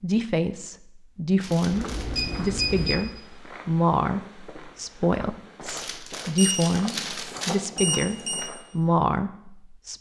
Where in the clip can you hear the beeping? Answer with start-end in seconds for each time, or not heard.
1.7-3.0, 6.3-8.5.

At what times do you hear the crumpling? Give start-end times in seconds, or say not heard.
1.4-2.3, 5.7-7.5.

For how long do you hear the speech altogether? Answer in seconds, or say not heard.
10 s.